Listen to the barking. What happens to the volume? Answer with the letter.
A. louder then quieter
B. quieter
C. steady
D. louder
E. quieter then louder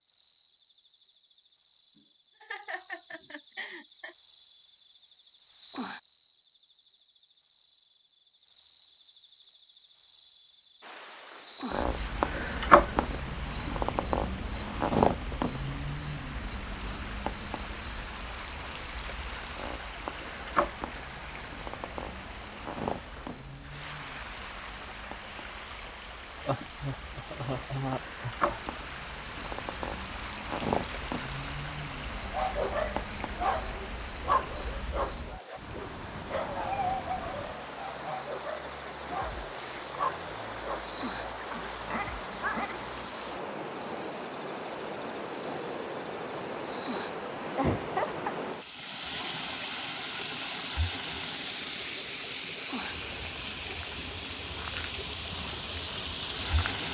B.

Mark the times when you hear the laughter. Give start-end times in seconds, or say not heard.
1.9-4.2, 26.4-28.6, 47.5-48.4.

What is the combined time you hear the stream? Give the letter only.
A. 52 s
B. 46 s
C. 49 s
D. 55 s
B.